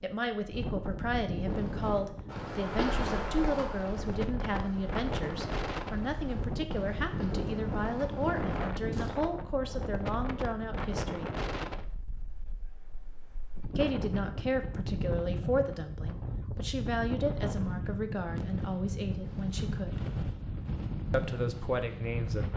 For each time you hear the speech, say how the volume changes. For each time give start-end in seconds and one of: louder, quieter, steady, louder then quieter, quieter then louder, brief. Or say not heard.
0.0-11.3 steady
13.8-20.0 steady
21.1-22.5 brief.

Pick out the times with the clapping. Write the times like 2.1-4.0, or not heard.
not heard.